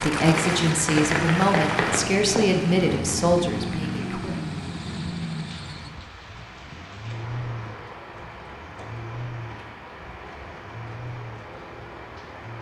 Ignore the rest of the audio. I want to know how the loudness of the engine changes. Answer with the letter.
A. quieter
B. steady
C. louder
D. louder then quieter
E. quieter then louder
A.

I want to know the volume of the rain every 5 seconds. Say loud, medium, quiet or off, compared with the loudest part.
loud, quiet, quiet.